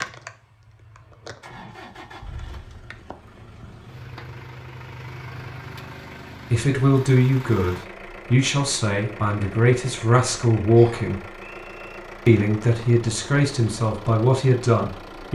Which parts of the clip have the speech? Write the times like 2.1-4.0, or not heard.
6.5-11.2, 12.2-15.3.